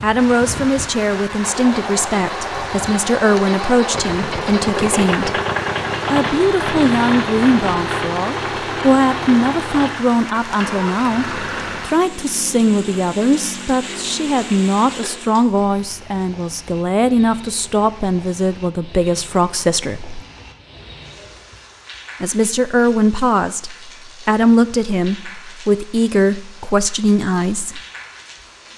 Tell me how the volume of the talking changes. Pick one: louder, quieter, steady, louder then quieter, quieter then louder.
steady.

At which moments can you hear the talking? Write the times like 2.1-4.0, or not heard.
0.0-5.4, 6.1-20.2, 22.2-27.8.